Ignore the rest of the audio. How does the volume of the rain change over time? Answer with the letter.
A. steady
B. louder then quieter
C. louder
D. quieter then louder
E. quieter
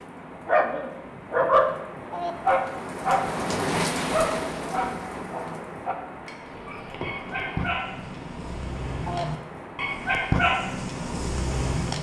B.